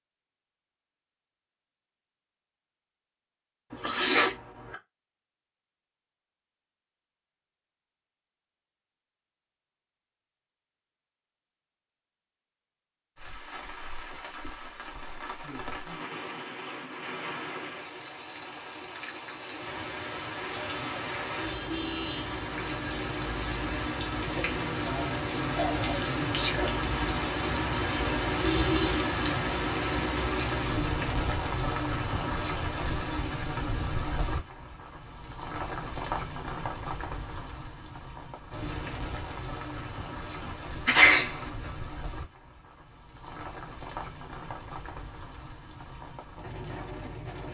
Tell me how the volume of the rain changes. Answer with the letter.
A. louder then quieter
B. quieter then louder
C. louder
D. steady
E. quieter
A.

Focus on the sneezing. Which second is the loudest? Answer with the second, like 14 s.
41 s.